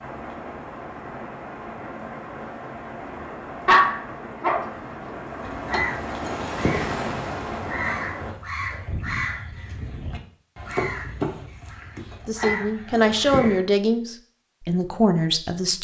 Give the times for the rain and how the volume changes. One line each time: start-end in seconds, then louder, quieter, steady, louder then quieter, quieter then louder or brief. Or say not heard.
0.0-8.3 louder.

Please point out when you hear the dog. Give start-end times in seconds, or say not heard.
3.6-5.2.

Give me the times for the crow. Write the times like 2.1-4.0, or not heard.
5.4-13.6.